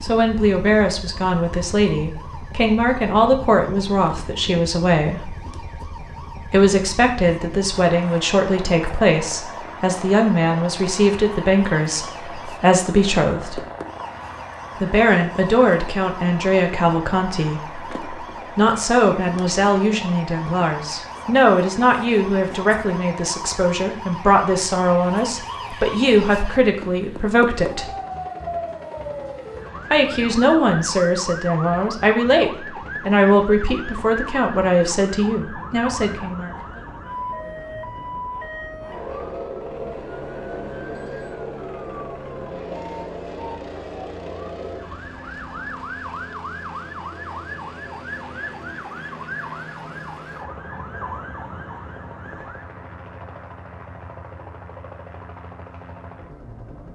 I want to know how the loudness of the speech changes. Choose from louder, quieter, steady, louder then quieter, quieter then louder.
steady.